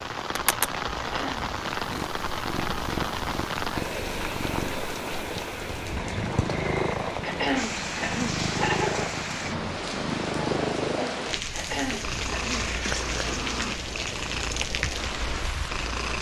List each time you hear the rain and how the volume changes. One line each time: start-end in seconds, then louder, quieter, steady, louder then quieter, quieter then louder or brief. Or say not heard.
0.0-16.1 steady.